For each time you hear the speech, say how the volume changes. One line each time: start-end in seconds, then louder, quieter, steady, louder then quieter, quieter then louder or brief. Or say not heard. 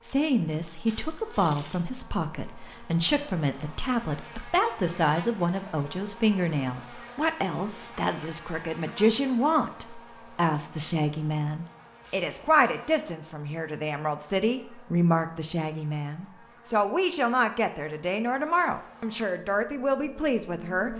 0.0-20.9 steady.